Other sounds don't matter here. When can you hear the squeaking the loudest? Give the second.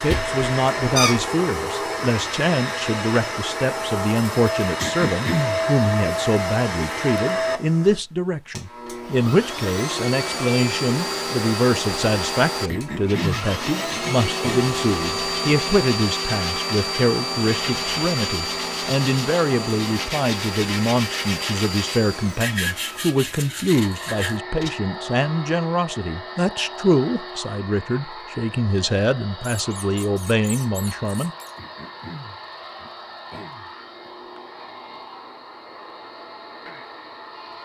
1 s.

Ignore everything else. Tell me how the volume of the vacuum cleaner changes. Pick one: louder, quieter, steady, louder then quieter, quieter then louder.
quieter.